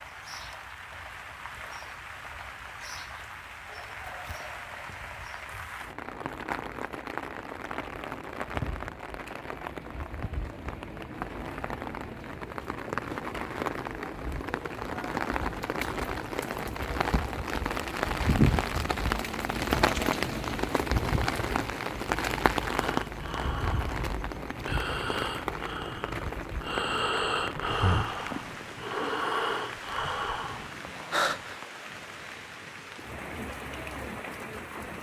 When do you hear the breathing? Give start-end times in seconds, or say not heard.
22.7-31.6.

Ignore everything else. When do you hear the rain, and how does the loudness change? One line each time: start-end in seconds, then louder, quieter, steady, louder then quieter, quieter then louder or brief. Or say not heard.
0.0-34.9 louder then quieter.